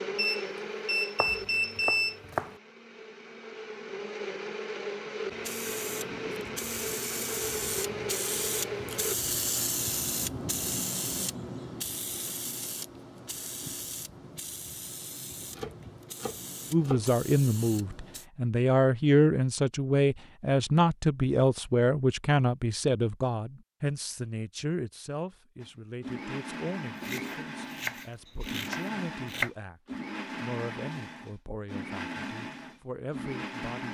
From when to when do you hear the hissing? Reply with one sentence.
The hissing can be heard from 5.2 to 18.2 s.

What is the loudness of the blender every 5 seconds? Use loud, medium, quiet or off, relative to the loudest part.
loud, loud, off, off, off, loud, loud.